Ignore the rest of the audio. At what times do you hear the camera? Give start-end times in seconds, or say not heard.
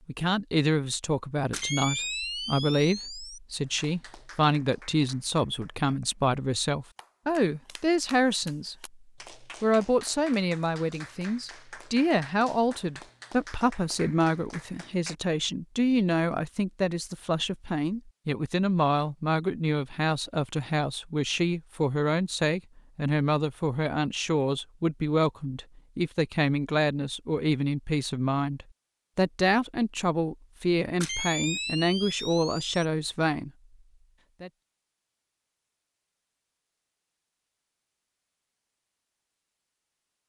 1.5-3.4, 31.0-32.7.